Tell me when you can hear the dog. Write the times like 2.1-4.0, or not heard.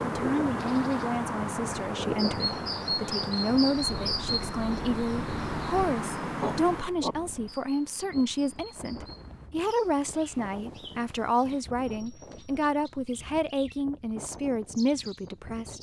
6.3-7.2.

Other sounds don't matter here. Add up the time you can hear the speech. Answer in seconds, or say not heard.
16 s.